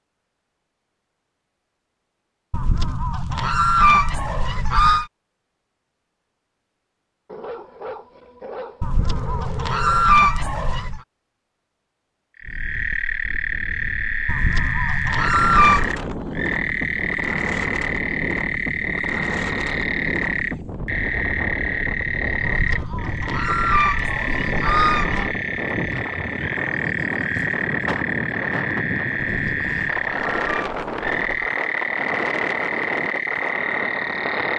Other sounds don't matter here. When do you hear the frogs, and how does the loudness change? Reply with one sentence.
You can hear the frogs from 12.3 to 34.5 s, at a steady volume.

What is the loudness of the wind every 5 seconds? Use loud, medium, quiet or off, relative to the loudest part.
off, off, quiet, loud, loud, loud, loud.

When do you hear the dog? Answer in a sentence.
The dog can be heard from 7.2 to 10.1 s.